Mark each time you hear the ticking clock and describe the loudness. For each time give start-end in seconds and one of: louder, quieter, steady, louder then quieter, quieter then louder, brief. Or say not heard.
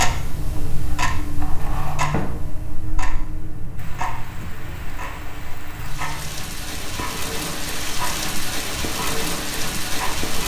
0.0-10.4 quieter.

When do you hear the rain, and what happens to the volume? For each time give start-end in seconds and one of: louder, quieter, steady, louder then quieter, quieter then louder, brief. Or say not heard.
3.8-10.4 louder.